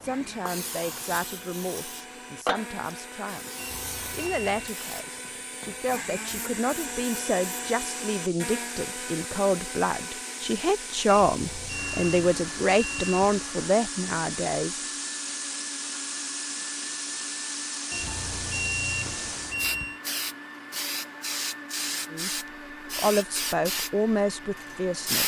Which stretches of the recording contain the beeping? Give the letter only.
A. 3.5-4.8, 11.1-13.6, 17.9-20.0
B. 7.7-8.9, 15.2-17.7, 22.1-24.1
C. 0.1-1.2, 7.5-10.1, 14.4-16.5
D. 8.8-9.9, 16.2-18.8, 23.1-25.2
A.